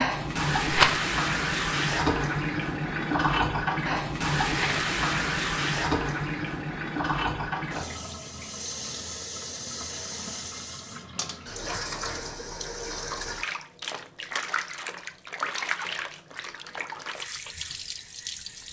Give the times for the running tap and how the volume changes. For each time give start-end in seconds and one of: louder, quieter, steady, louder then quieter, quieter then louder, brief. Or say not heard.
0.0-18.6 quieter.